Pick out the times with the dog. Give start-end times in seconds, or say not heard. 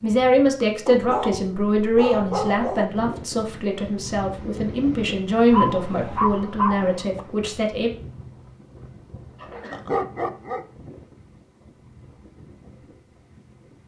0.8-2.9, 5.5-7.2, 9.7-10.7.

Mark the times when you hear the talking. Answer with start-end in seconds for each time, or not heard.
0.0-7.9.